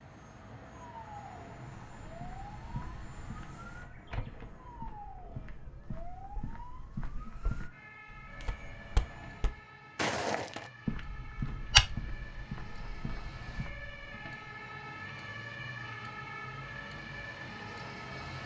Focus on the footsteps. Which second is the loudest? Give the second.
12 s.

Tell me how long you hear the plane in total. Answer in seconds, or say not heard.
7 s.